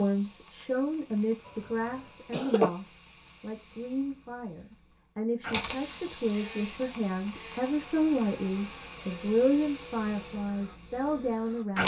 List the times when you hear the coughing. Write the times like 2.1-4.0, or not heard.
1.4-2.7.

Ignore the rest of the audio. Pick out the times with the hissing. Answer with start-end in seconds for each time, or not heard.
0.0-11.8.